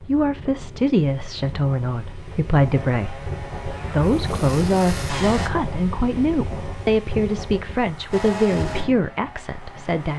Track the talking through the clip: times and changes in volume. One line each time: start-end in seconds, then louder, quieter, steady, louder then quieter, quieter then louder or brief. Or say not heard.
0.1-10.1 steady.